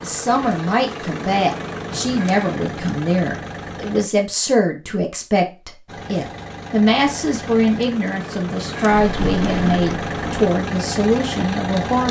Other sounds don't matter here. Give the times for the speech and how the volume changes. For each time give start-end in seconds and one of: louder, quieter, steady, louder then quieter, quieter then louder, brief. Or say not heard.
0.0-12.0 steady.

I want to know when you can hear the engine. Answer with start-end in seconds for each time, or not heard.
0.0-4.1, 5.8-12.0.